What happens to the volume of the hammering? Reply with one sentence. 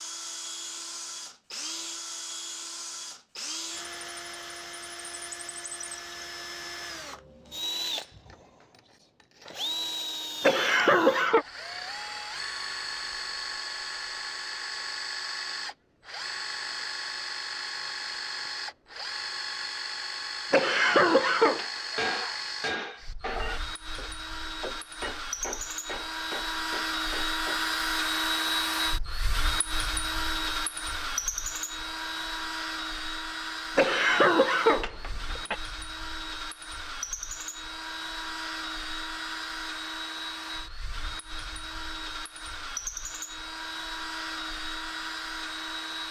The volume of the hammering goes down.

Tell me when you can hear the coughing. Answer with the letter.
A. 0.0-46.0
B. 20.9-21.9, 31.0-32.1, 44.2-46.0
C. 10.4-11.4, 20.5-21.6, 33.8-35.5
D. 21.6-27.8
C.